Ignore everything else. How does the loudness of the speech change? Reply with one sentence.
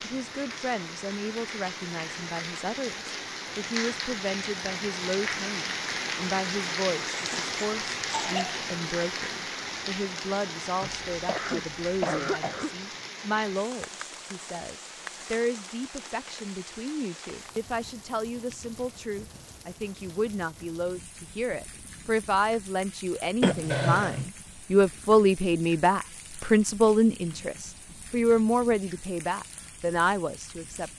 The volume of the speech goes up.